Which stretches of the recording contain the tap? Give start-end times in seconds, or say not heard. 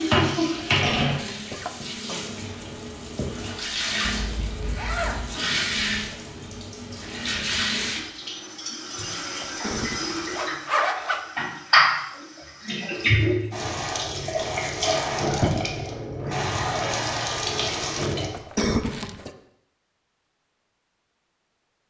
0.0-18.3.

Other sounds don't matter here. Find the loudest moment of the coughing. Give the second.
19 s.